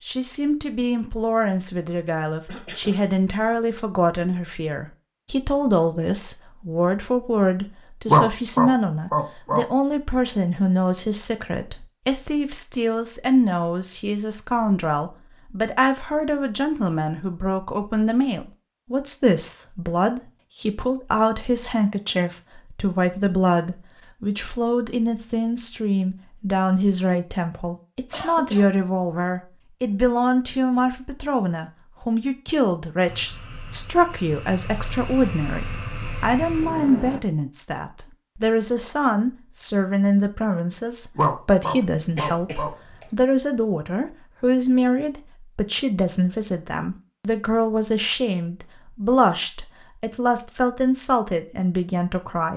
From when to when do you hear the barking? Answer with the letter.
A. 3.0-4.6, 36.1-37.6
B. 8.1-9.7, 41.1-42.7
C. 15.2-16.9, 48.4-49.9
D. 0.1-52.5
B.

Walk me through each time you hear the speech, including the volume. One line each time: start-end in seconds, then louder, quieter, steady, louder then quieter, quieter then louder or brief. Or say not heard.
0.1-52.5 steady.